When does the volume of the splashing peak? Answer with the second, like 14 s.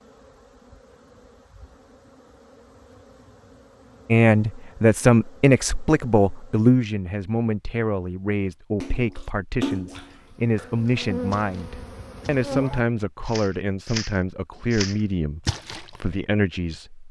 10 s.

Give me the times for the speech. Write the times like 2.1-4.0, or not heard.
4.0-17.0.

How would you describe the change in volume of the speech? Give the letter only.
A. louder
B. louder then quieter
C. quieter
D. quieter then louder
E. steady
C.